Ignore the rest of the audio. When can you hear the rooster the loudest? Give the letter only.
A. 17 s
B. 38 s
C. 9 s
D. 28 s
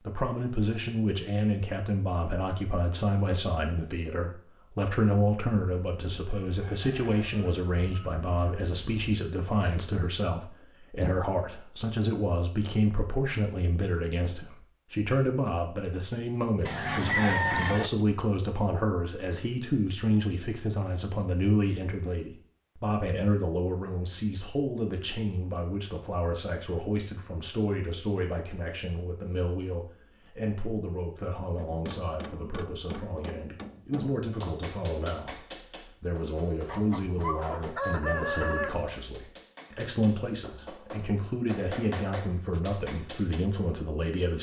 A.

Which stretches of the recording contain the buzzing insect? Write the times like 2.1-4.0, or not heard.
not heard.